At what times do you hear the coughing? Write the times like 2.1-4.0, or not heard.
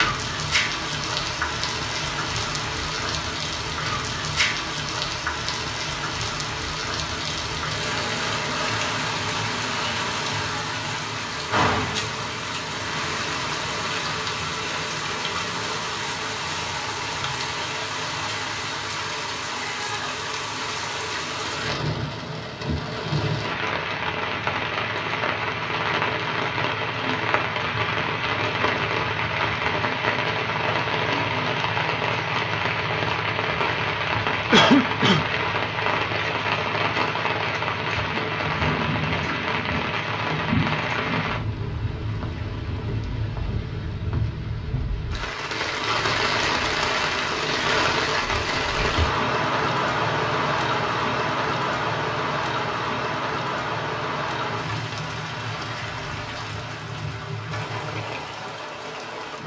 34.5-35.2.